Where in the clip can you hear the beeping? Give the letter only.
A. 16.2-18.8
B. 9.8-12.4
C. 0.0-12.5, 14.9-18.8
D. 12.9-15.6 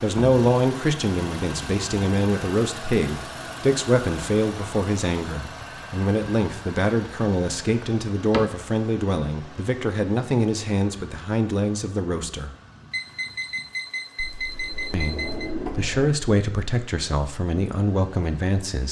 D.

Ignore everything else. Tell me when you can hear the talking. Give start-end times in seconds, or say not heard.
0.0-12.5, 14.9-18.8.